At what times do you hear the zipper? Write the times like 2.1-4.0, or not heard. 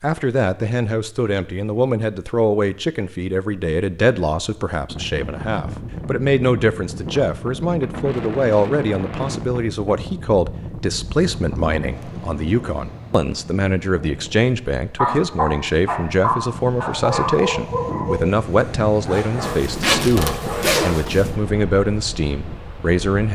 19.4-21.4.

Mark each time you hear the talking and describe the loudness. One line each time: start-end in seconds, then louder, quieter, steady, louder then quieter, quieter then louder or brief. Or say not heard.
0.0-23.3 steady.